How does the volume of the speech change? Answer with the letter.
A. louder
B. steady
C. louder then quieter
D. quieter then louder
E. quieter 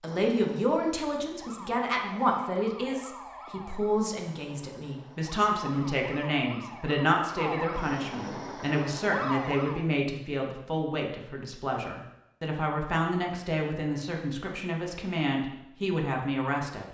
B.